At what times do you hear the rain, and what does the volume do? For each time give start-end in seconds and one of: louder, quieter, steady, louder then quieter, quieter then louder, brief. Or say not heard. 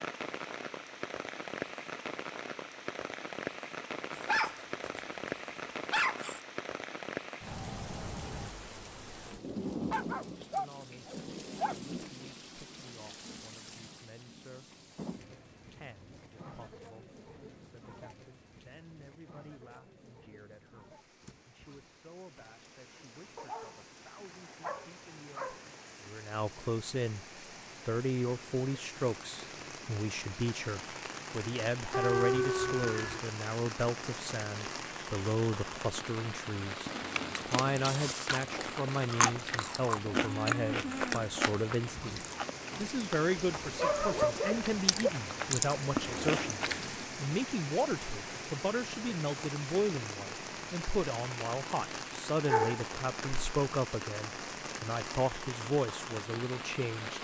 0.0-57.1 quieter then louder.